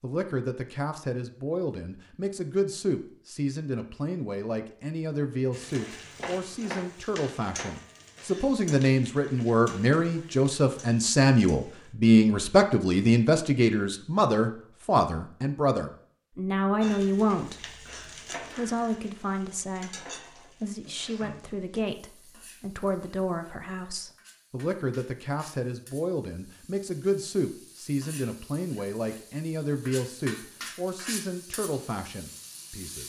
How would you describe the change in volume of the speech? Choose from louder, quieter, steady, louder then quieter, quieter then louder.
louder then quieter.